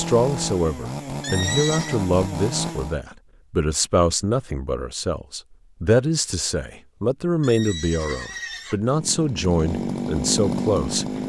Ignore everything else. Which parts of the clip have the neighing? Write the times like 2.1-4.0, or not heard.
1.2-2.0, 7.4-8.8.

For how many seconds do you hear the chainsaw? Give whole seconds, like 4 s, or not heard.
5 s.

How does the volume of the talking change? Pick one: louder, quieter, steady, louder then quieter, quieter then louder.
steady.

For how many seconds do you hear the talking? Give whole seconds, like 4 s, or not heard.
11 s.